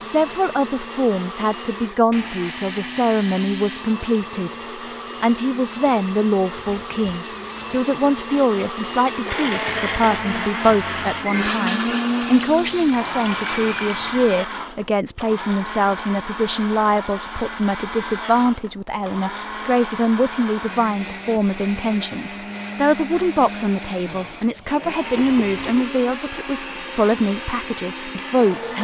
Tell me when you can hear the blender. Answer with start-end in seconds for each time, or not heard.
0.0-28.7.